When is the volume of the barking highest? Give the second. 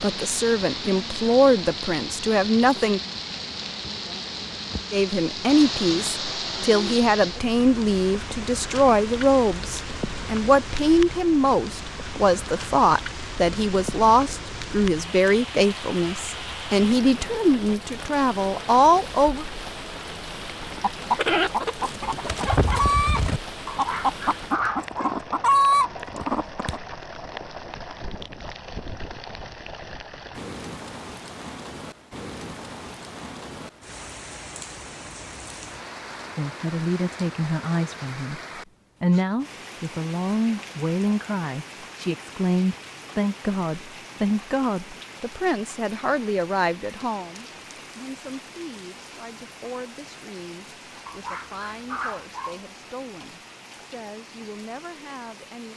25 s.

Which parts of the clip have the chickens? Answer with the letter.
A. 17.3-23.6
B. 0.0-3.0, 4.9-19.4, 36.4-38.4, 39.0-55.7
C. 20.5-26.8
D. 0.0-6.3
C.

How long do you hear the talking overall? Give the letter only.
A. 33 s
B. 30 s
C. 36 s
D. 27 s
C.